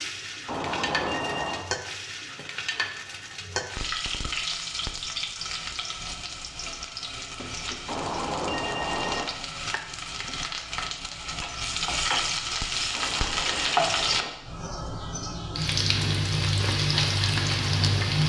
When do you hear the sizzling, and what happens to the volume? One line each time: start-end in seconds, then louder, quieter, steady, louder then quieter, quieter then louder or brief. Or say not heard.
0.0-18.2 louder.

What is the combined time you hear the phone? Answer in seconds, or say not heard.
4 s.